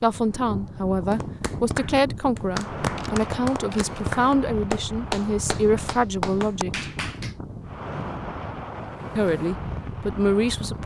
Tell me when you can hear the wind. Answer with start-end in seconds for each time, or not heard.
0.0-10.8.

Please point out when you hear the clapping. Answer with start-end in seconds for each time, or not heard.
1.1-7.3.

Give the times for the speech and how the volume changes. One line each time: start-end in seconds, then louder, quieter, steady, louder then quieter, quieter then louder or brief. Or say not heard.
0.0-6.8 steady
9.2-10.8 brief.